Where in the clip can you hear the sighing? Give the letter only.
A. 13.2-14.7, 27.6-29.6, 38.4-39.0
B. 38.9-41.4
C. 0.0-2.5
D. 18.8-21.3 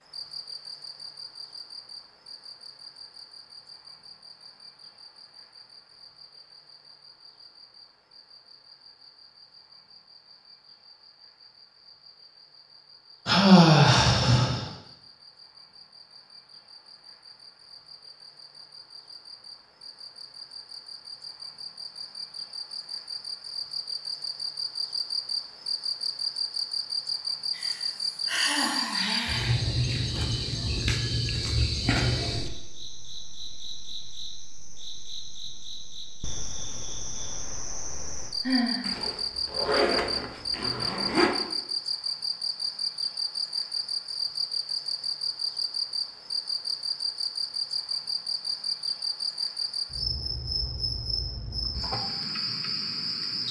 A.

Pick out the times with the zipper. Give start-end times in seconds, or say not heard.
38.9-41.4.